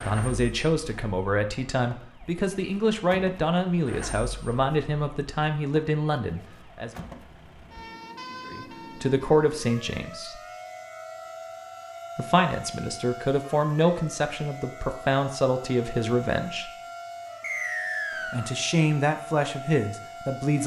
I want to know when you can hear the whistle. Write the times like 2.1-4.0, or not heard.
17.4-18.6.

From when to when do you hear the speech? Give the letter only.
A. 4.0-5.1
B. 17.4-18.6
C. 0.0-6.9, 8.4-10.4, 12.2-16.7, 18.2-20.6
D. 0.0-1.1
C.